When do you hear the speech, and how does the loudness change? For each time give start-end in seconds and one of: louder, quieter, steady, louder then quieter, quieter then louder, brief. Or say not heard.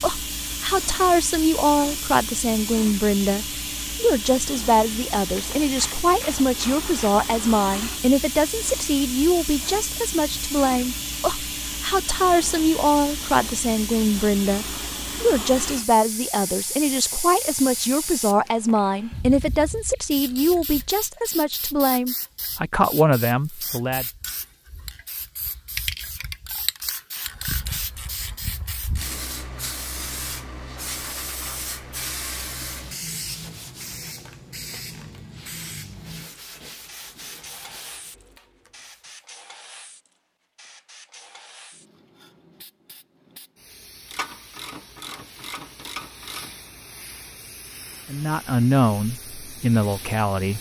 0.0-24.1 steady
48.0-50.5 brief.